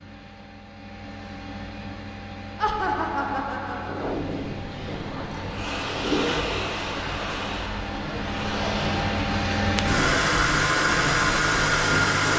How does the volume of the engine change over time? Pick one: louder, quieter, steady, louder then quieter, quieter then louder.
louder.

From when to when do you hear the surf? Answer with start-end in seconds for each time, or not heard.
3.8-12.3.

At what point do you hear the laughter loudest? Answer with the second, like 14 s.
3 s.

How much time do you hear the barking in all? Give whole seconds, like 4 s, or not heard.
not heard.